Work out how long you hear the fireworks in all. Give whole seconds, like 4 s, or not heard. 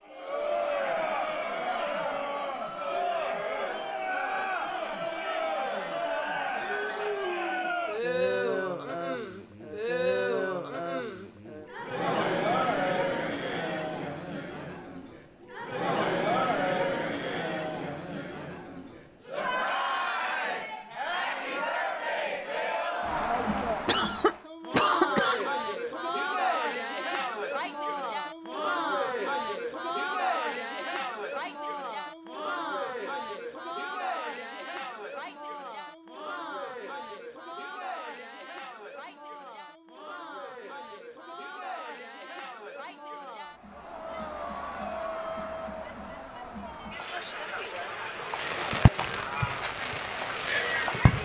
3 s.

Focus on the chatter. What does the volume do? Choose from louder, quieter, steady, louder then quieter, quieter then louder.
quieter.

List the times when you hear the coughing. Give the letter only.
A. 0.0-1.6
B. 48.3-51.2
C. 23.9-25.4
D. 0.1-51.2
C.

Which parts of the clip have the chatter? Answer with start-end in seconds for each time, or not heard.
0.1-51.2.